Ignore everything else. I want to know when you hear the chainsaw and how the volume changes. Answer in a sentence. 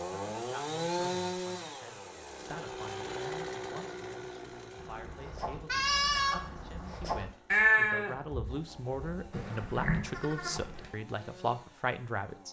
You can hear the chainsaw from 0.0 to 12.4 s, getting quieter.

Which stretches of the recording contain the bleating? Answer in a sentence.
You can hear the bleating from 4.8 to 10.9 s.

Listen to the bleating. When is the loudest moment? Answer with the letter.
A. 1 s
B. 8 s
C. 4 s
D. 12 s
B.